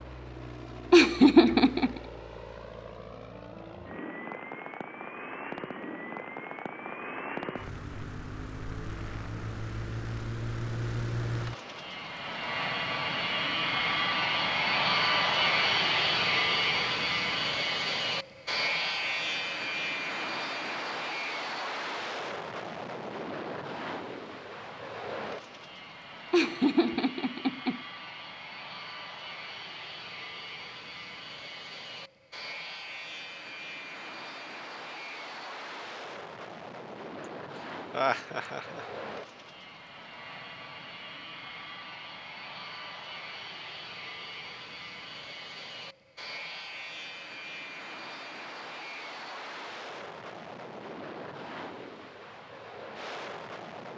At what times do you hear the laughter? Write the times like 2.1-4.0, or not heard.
0.9-2.0, 26.3-27.8, 37.9-38.9.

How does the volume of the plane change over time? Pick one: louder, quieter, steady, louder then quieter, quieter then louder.
louder then quieter.